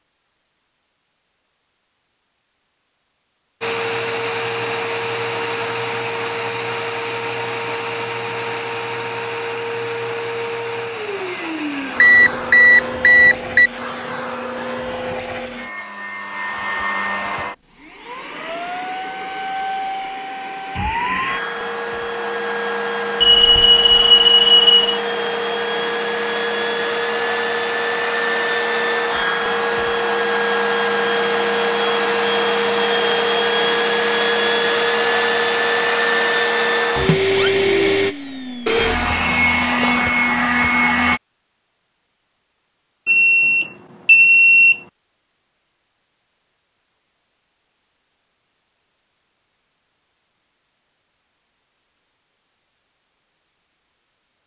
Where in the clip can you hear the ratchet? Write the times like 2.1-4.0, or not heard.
not heard.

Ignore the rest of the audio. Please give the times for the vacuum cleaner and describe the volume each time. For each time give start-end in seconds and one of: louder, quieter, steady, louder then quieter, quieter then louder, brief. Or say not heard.
3.6-41.2 louder.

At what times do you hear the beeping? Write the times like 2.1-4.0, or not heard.
11.9-13.7, 23.2-24.9, 43.0-44.8.